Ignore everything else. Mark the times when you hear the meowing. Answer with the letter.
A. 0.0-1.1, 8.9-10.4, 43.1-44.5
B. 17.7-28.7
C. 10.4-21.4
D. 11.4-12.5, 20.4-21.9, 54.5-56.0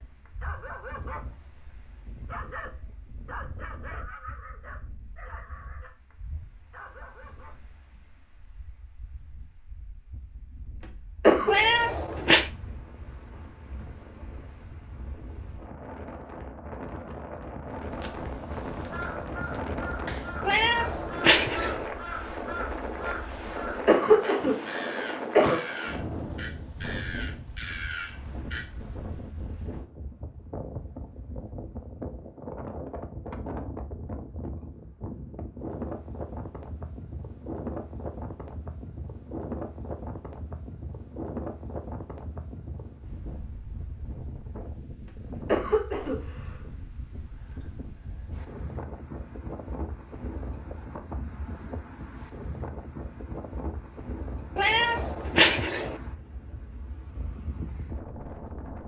D.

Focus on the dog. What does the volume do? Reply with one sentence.
The volume of the dog goes down.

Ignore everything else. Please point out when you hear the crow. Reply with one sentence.
You can hear the crow from 17.7 to 28.7 s.